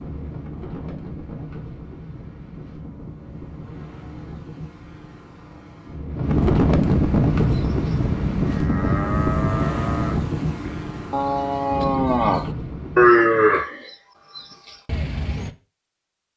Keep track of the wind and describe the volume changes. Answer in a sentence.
The loudness of the wind goes up, then down.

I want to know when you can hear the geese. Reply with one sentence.
The geese can't be heard in this clip.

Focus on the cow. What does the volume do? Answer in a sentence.
The loudness of the cow goes up, then down.